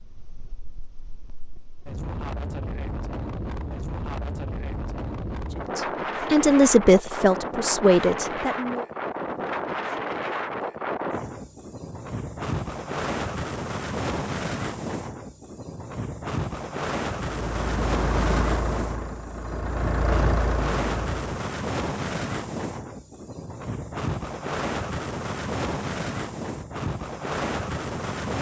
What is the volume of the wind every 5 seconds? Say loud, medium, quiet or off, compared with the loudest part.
medium, loud, loud, loud, loud, loud.